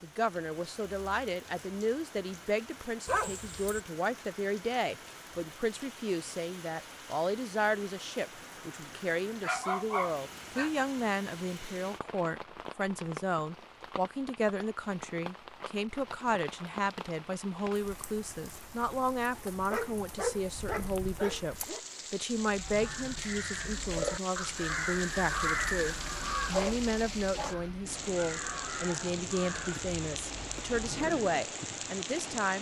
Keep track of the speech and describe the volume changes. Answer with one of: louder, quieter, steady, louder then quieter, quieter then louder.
steady.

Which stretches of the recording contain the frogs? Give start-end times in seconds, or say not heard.
not heard.